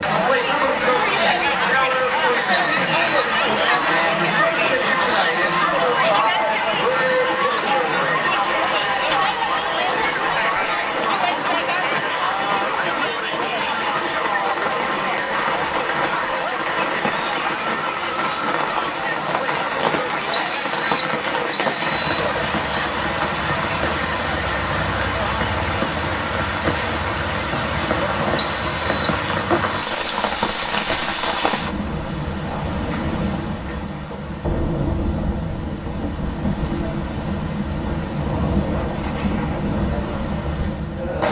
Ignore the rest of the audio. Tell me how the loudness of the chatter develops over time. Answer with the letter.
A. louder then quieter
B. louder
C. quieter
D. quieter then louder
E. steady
C.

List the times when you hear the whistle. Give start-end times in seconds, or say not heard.
2.5-4.1, 20.3-22.9, 28.4-29.1.